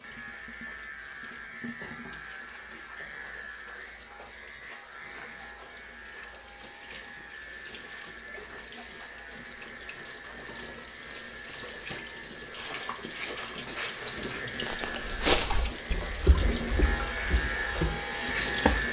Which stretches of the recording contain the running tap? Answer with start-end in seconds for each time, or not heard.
0.0-18.8.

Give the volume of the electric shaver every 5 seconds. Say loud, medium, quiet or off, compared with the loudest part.
medium, medium, medium, loud.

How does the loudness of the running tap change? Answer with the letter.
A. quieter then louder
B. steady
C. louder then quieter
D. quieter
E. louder
E.